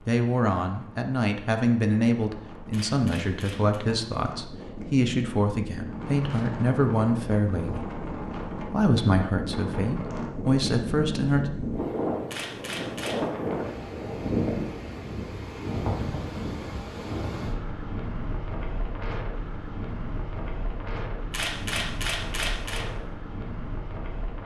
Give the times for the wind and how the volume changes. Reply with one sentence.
You can hear the wind from 0.0 to 24.4 s, getting louder then quieter.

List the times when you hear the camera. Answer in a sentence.
You can hear the camera from 2.7 to 3.8 s, from 12.3 to 13.2 s and from 21.3 to 22.9 s.